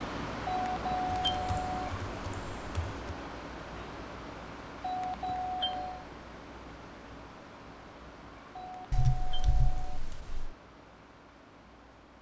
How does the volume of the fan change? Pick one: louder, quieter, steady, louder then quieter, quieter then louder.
quieter.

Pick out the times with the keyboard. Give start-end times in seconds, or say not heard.
1.1-3.1, 8.9-10.6.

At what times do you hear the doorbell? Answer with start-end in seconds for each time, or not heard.
0.5-1.9, 4.8-6.0, 8.5-10.0.